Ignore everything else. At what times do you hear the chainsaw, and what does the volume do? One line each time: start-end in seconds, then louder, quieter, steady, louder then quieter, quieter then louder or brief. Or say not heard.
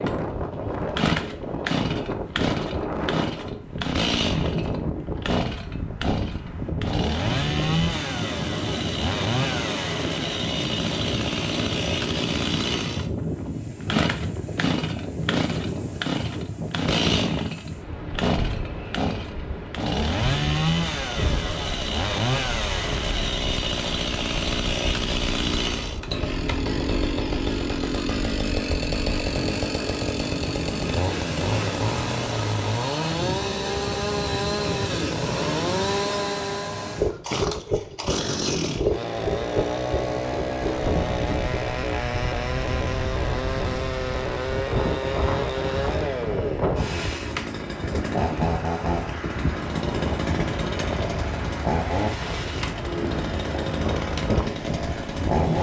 0.0-55.5 steady.